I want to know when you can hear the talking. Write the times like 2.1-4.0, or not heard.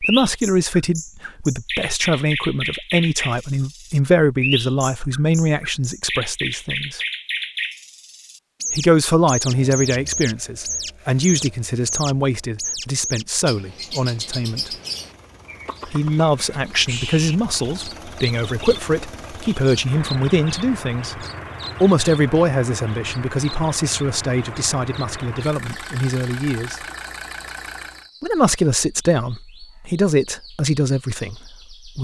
0.0-7.0, 8.7-14.8, 15.8-26.8, 28.2-31.9.